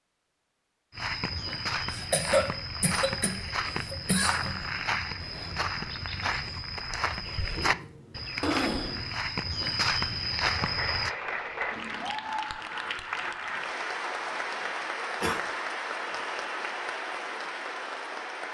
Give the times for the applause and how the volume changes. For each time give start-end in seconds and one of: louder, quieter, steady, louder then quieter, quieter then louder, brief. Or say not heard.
10.3-18.4 steady.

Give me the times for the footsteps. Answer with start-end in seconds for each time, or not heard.
0.9-11.1.